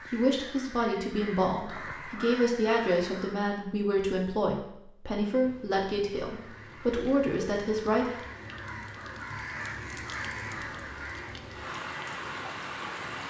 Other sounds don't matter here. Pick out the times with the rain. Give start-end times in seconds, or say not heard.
5.4-13.2.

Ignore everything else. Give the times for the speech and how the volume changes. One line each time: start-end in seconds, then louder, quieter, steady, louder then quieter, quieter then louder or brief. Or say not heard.
0.1-8.2 steady.